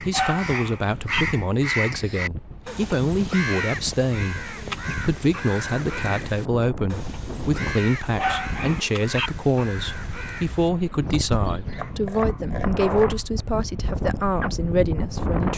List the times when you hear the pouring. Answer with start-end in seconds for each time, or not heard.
not heard.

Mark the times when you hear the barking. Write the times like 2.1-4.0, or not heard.
0.1-1.2, 8.2-9.3.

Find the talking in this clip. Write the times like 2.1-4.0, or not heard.
0.0-15.5.